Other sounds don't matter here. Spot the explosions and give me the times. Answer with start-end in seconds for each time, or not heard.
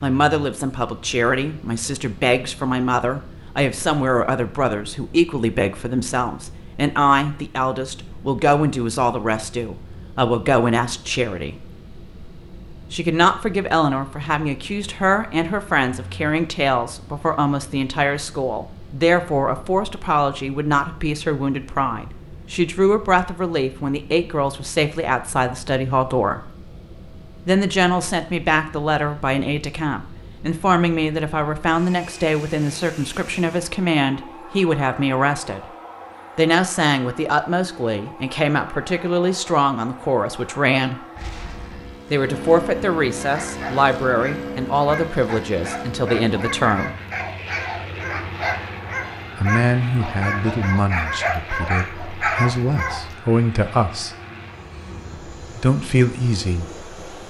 41.1-42.0.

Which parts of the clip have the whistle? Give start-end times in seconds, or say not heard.
not heard.